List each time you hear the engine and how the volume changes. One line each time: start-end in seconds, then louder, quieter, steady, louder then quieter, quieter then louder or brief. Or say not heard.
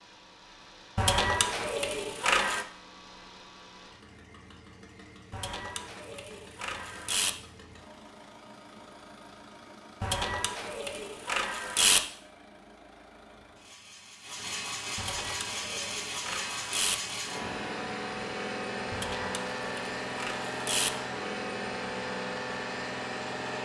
0.0-23.5 louder.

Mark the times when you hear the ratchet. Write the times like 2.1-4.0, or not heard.
0.9-2.6, 5.3-7.3, 10.0-12.0, 14.9-16.9, 18.9-20.9.